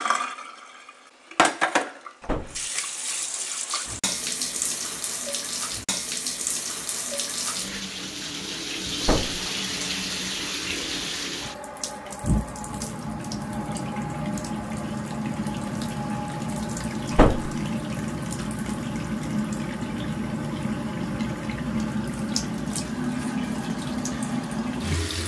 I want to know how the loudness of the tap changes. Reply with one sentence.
The volume of the tap stays about the same.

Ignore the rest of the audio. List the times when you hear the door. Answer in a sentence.
You can hear the door from 2.2 to 2.6 s, from 9.0 to 9.4 s and from 17.1 to 17.6 s.